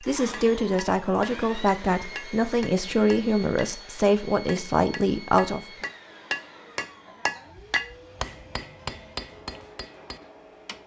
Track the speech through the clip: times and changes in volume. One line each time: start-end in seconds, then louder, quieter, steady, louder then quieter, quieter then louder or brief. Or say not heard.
0.1-5.6 steady.